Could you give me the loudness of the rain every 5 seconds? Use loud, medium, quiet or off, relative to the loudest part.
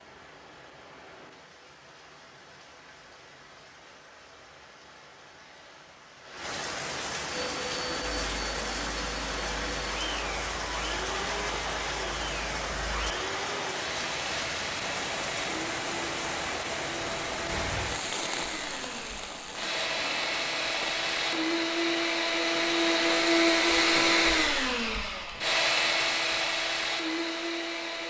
quiet, loud, loud, loud, medium, off.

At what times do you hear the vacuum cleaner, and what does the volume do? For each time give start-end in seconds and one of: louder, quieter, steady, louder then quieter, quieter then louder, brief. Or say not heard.
7.2-28.0 louder.